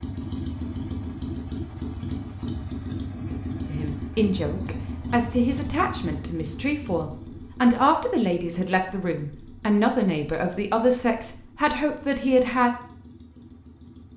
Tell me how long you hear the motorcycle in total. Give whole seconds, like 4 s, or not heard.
14 s.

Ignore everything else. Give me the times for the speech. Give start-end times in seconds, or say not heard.
3.6-12.7.